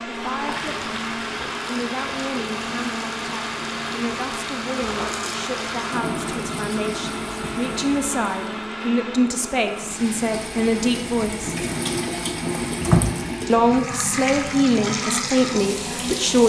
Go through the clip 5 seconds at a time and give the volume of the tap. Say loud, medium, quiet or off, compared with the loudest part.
medium, medium, loud, loud.